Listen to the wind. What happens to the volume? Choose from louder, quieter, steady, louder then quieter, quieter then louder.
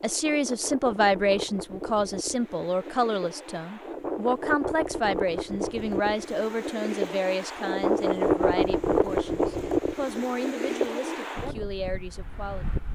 louder then quieter.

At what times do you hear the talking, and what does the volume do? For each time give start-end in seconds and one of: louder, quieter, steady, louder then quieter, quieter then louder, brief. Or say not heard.
0.0-12.8 quieter.